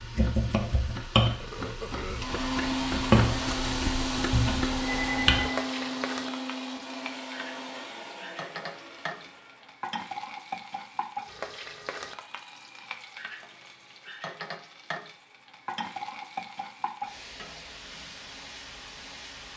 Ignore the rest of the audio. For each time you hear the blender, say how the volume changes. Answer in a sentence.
You can hear the blender from 2.1 to 9.8 s, getting quieter.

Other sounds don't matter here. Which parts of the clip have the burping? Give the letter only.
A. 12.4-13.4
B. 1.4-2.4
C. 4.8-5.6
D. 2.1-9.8
B.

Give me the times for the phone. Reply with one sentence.
The phone can be heard from 4.8 to 5.6 s.